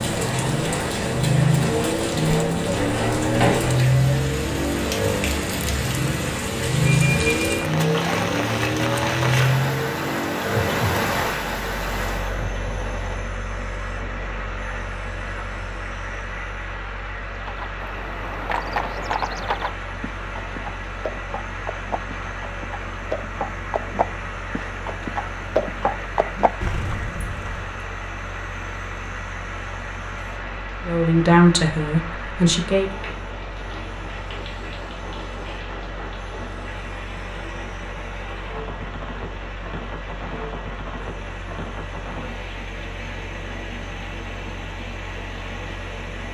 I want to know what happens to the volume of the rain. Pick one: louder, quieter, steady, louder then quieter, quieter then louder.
quieter.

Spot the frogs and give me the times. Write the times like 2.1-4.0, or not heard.
not heard.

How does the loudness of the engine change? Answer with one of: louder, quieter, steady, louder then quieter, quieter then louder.
quieter.